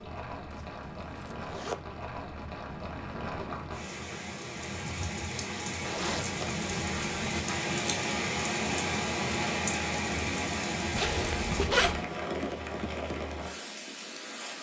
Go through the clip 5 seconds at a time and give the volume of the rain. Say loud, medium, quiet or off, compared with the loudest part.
medium, loud, loud.